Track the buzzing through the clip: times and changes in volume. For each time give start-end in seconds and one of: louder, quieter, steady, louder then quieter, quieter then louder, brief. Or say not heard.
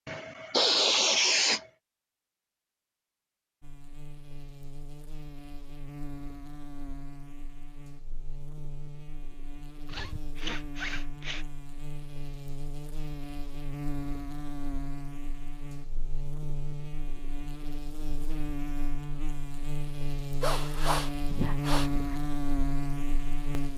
3.6-23.7 louder.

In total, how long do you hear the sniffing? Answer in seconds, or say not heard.
5 s.